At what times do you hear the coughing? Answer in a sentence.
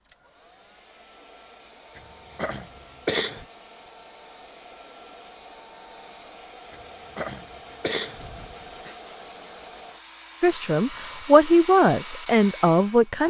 You can hear the coughing from 1.9 to 3.5 s and from 6.7 to 8.9 s.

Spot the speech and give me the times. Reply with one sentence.
You can hear the speech from 10.4 to 13.2 s.